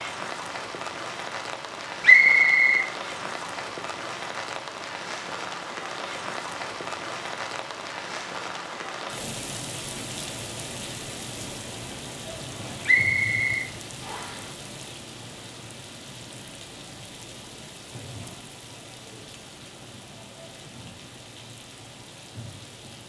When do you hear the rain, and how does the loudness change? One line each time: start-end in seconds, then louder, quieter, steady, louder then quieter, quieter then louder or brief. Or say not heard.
0.0-23.0 quieter.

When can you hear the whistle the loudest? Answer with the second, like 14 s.
2 s.